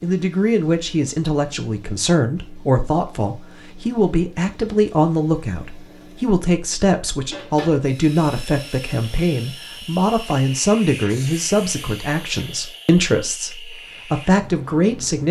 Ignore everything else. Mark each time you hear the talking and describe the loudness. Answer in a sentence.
You can hear the talking from 0.0 to 15.2 s, at a steady volume.